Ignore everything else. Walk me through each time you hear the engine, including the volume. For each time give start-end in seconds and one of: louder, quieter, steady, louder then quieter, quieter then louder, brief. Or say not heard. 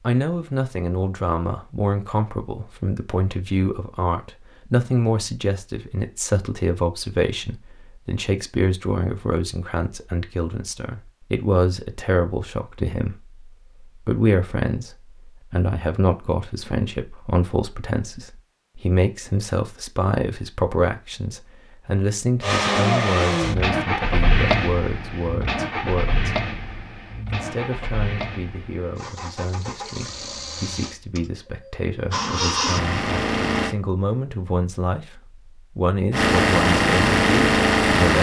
22.4-33.8 quieter then louder
36.1-38.1 brief.